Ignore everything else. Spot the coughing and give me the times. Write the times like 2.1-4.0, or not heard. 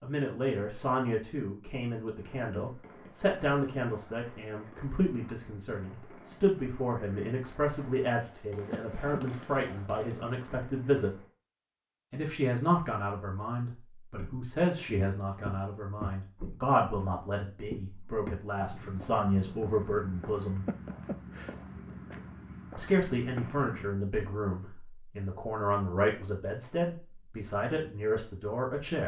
8.7-9.2, 20.6-21.6.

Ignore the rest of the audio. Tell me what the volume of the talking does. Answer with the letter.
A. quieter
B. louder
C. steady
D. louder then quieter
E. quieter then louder
C.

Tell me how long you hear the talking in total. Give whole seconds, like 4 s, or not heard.
26 s.